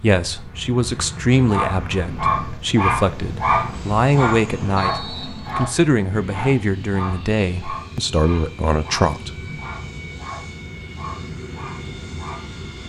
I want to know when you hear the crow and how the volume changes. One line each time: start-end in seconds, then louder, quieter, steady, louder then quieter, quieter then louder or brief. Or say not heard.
not heard.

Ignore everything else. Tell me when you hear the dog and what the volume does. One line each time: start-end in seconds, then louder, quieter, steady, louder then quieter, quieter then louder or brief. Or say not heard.
1.4-12.6 quieter.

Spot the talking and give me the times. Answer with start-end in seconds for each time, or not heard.
0.0-9.3.